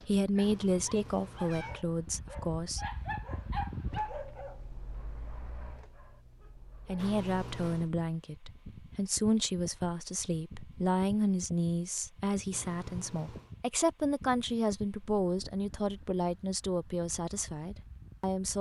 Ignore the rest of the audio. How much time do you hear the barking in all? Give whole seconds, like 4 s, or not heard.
7 s.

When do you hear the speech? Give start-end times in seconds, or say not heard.
0.1-2.8, 6.8-18.5.